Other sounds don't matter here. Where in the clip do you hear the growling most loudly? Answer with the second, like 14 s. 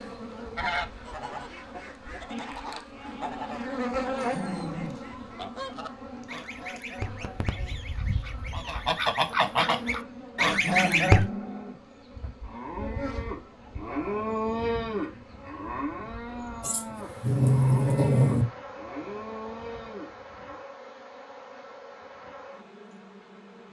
18 s.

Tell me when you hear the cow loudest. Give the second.
15 s.